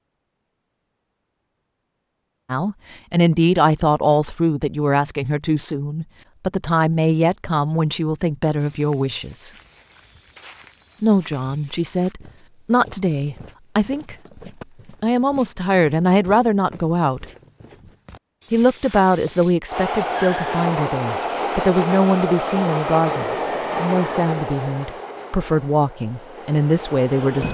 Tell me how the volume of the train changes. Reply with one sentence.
The loudness of the train goes down.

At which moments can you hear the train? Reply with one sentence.
You can hear the train from 19.6 to 27.4 s.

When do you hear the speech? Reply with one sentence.
You can hear the speech from 2.5 to 9.5 s, from 11.0 to 14.2 s, from 15.0 to 17.2 s and from 18.5 to 27.4 s.